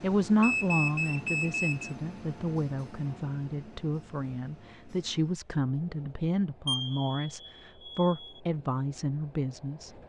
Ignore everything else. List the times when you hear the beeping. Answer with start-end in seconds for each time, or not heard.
0.4-1.9, 6.7-8.4.